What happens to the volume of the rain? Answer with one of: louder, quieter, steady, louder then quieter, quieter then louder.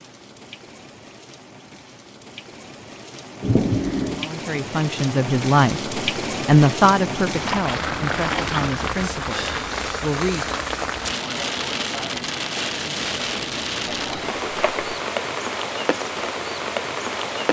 louder.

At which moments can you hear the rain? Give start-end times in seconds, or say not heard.
0.0-17.4.